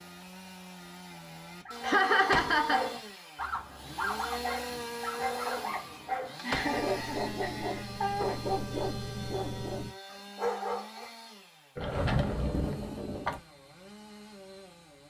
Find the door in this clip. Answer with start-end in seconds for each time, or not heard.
2.1-2.6, 6.3-6.8, 11.8-13.4.